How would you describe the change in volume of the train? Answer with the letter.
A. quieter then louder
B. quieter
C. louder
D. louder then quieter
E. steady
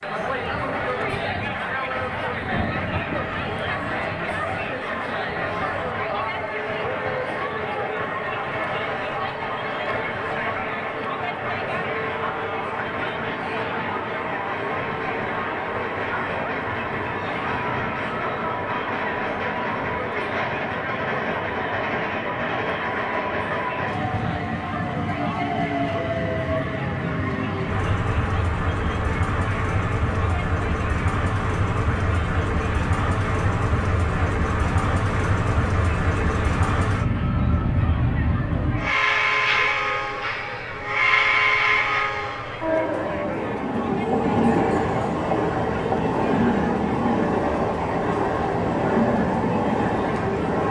C.